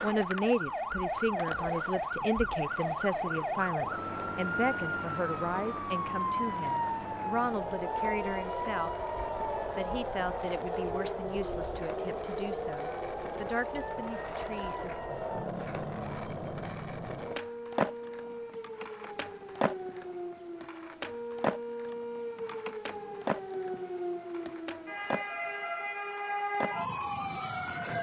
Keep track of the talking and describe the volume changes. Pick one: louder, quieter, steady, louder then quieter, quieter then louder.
quieter.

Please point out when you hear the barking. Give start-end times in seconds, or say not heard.
not heard.